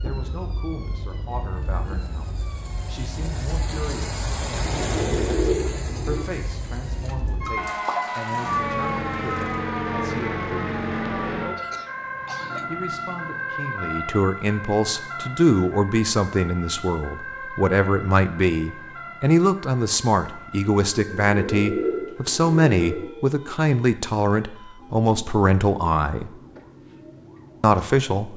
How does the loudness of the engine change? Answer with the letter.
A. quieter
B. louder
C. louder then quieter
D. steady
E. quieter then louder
C.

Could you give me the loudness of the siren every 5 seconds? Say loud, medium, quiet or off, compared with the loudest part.
medium, loud, loud, medium, quiet, quiet.